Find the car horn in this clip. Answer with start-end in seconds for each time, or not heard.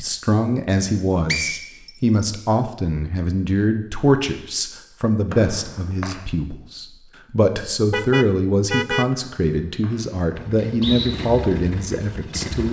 7.8-9.1.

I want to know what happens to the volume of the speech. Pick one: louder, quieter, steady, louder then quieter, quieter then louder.
steady.